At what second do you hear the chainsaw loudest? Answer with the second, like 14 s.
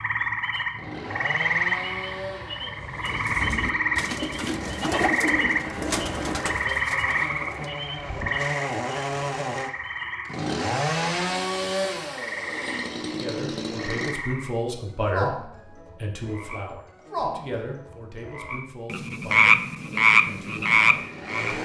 11 s.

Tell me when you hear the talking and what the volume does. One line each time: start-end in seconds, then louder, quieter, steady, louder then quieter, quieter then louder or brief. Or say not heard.
13.1-21.6 quieter.